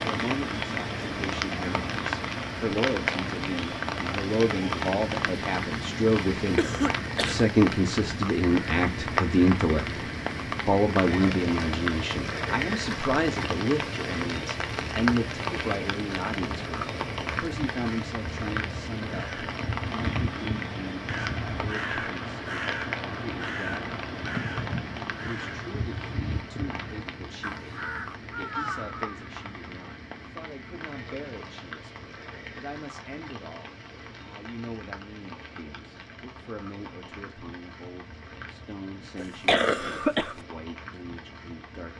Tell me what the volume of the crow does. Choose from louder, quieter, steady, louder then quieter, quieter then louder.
steady.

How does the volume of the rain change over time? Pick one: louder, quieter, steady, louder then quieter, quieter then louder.
quieter.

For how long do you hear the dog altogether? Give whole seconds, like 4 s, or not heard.
not heard.